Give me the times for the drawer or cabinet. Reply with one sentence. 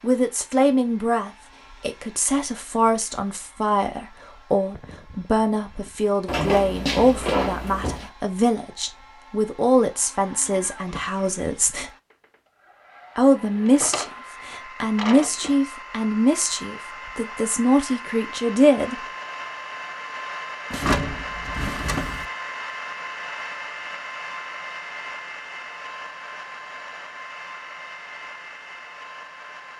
You can hear the drawer or cabinet from 6.2 to 8.1 s, from 13.6 to 15.6 s and from 20.7 to 22.2 s.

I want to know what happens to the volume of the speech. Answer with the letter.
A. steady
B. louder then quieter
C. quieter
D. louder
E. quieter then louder
A.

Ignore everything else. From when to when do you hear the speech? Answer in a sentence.
You can hear the speech from 0.0 to 11.9 s and from 13.2 to 19.0 s.